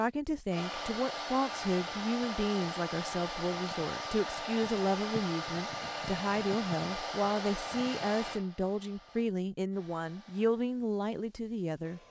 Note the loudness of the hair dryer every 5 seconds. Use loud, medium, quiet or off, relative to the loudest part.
loud, loud, quiet.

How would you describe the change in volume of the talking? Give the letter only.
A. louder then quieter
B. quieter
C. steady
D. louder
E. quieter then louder
C.